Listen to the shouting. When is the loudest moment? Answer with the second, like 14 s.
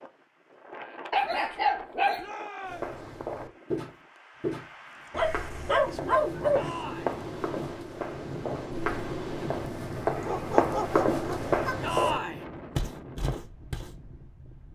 12 s.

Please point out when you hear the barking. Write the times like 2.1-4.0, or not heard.
1.1-2.2, 5.1-6.7, 10.2-11.9.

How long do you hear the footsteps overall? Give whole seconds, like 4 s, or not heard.
11 s.